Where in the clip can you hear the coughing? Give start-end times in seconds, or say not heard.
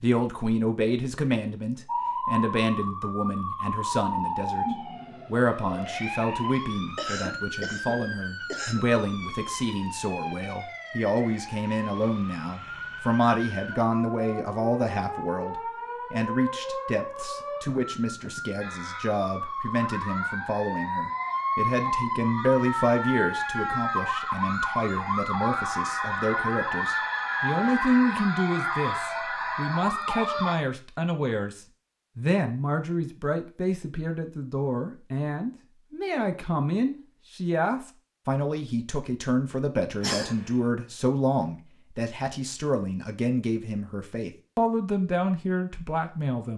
6.5-8.8, 40.0-40.6.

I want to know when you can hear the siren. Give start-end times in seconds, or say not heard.
1.9-30.6.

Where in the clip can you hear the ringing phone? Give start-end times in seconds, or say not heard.
not heard.